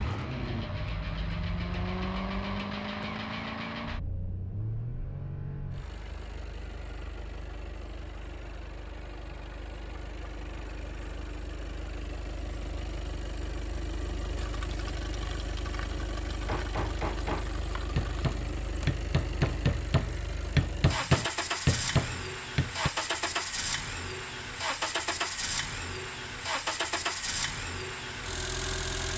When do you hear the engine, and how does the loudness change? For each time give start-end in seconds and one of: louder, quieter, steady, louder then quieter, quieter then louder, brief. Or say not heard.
0.0-29.1 quieter then louder.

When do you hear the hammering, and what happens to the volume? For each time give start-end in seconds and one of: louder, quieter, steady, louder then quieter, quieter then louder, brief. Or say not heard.
16.4-22.9 louder.